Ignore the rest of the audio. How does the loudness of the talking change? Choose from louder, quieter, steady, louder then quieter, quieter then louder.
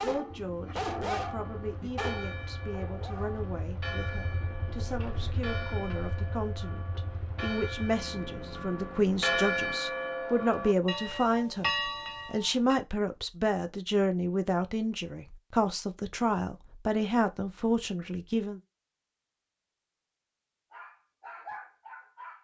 louder.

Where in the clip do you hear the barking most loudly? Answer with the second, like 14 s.
1 s.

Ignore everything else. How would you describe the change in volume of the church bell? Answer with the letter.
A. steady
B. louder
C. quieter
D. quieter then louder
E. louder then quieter
B.